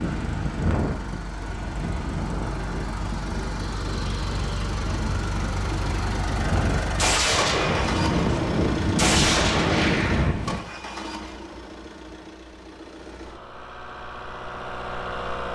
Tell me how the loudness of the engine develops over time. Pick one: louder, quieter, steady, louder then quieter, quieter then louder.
louder then quieter.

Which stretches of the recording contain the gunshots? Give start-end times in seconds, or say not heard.
7.0-10.3.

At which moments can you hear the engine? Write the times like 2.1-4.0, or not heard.
0.0-15.5.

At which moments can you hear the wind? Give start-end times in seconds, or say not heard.
0.0-10.6.